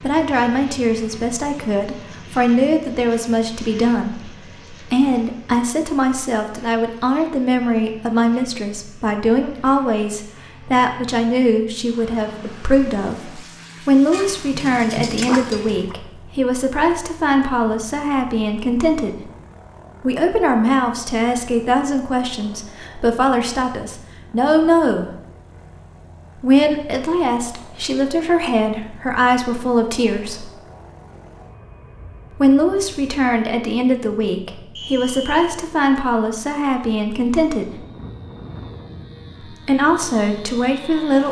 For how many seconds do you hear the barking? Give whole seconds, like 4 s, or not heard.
2 s.